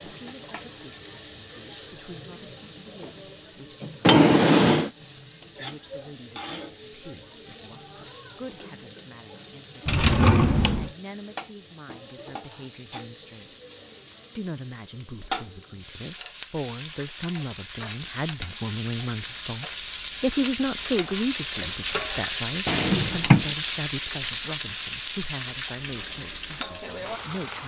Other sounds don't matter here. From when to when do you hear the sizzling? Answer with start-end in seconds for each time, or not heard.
0.0-27.6.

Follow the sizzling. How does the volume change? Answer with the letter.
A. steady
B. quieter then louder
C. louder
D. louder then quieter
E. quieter
C.